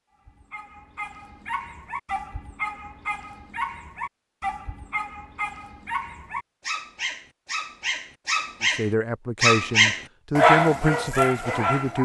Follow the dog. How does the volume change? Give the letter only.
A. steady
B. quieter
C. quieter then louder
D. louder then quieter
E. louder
E.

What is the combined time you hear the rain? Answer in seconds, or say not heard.
not heard.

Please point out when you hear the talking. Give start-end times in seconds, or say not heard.
8.6-12.0.